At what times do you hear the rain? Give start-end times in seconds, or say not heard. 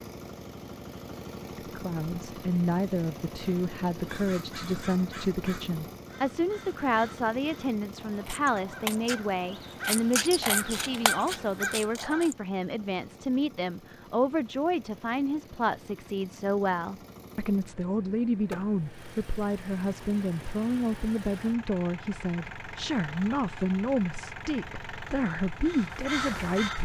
not heard.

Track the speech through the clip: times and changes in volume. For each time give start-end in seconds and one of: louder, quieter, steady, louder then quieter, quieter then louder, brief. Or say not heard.
1.6-26.8 steady.